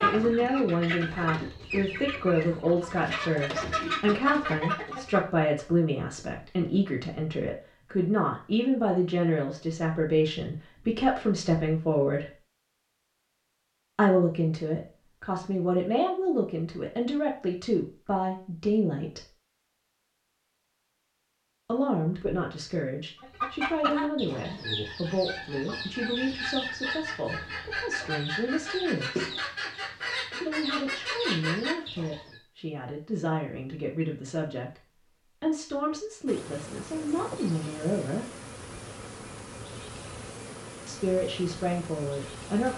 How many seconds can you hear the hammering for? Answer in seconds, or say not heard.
not heard.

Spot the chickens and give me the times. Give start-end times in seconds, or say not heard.
0.0-5.2, 23.1-32.4.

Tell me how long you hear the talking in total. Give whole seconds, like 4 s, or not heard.
35 s.